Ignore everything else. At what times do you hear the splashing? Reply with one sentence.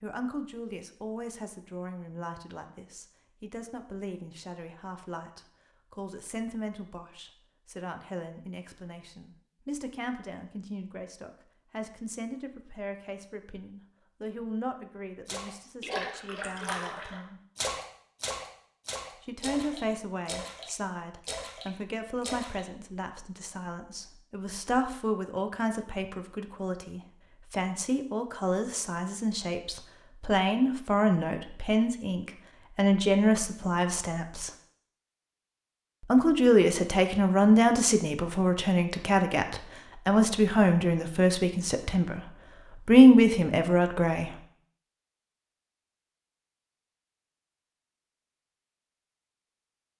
The splashing can be heard from 15.2 to 22.6 s.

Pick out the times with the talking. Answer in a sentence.
You can hear the talking from 0.0 to 17.4 s, from 19.2 to 34.5 s, from 36.0 to 42.2 s and from 42.9 to 44.3 s.